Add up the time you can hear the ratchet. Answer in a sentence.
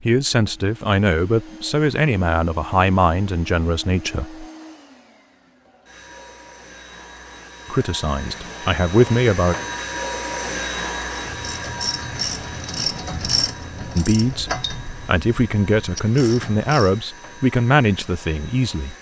You can hear the ratchet for 6 seconds altogether.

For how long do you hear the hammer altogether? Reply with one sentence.
You can't hear the hammer here.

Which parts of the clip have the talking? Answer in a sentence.
The talking can be heard from 0.0 to 4.5 s, from 7.7 to 9.6 s and from 13.9 to 18.9 s.